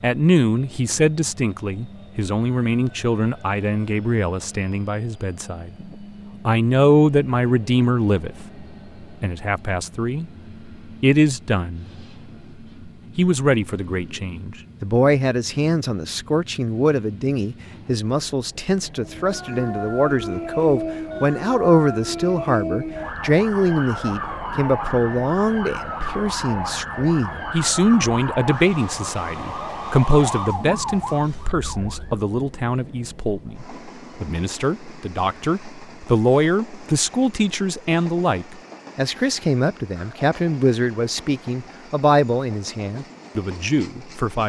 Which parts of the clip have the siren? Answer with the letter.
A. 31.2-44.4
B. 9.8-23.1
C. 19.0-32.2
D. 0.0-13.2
C.